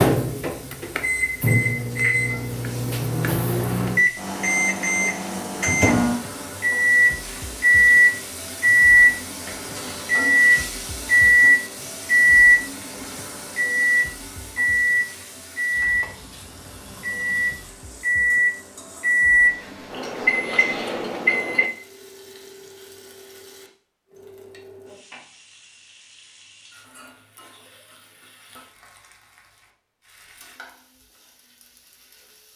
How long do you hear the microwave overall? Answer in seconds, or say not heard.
22 s.